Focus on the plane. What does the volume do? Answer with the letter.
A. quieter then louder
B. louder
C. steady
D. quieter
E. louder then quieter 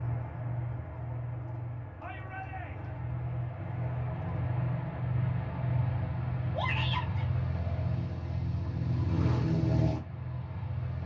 B.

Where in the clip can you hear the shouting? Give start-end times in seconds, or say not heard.
2.0-3.0, 6.5-7.2.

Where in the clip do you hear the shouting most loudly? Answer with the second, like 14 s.
7 s.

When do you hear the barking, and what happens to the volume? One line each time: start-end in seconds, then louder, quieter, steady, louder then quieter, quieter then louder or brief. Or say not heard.
not heard.